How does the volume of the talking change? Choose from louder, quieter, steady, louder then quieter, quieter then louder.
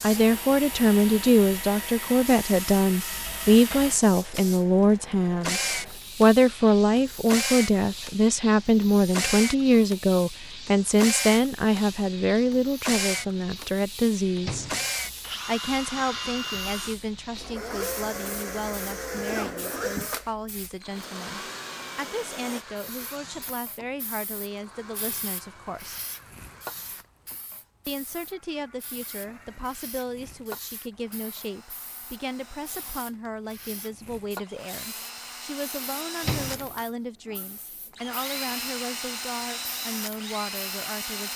quieter.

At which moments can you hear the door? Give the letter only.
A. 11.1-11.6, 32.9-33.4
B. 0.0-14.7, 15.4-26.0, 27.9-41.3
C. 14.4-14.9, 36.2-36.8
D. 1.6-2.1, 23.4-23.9
C.